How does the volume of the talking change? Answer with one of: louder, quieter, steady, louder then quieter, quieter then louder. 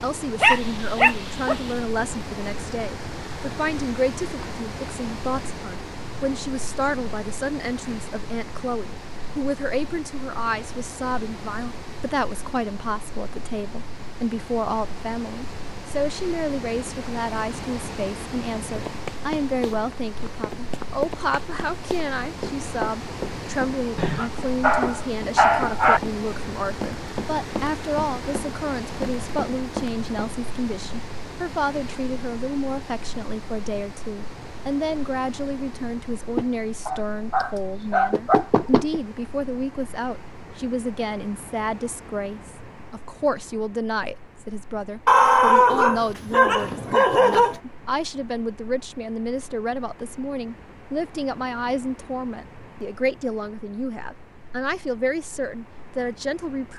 steady.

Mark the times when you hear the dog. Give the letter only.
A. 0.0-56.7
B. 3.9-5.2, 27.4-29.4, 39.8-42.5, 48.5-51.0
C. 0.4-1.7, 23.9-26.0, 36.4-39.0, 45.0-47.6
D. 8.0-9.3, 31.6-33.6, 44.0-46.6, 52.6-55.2
C.